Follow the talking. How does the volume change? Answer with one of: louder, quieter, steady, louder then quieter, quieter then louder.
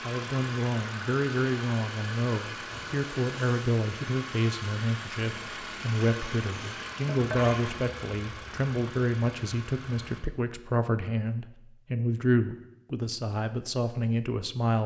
steady.